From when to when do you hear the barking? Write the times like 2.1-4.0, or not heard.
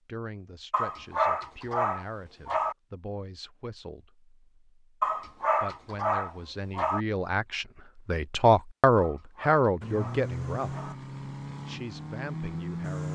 0.7-2.8, 5.0-7.0, 8.9-10.9.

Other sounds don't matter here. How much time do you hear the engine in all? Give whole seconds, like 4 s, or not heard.
3 s.